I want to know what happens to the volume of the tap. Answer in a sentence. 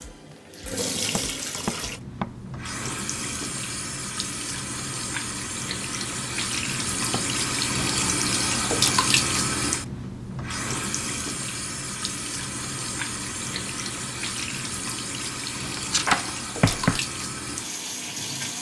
The loudness of the tap goes up, then down.